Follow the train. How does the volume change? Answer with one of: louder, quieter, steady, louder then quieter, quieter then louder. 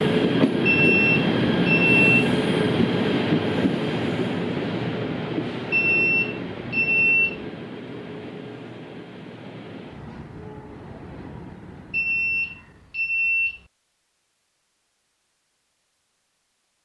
quieter.